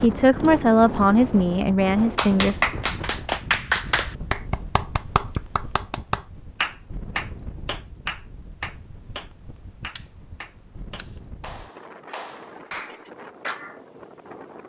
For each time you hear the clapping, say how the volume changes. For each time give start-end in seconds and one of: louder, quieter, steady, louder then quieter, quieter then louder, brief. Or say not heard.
2.1-13.8 quieter.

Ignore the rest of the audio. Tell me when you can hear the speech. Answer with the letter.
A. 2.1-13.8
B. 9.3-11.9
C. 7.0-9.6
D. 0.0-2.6
D.